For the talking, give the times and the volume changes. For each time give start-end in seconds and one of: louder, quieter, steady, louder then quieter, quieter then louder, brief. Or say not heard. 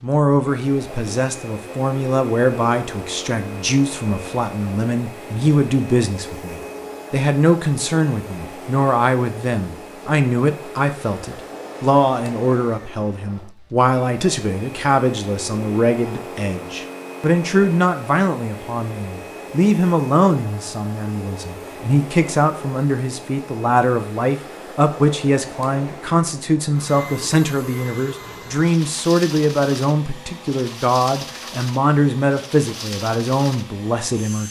0.0-34.4 steady.